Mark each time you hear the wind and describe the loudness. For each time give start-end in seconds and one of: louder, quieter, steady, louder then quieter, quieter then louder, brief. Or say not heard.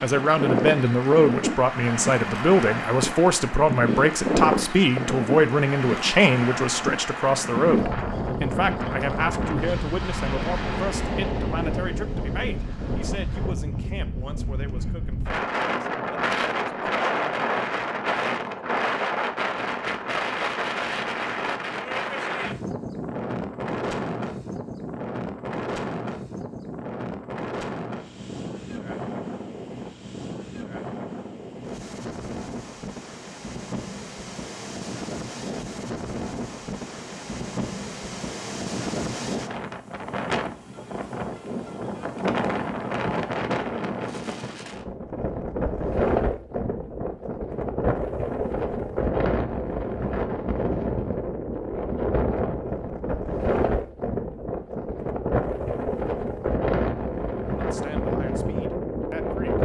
0.0-59.6 quieter then louder.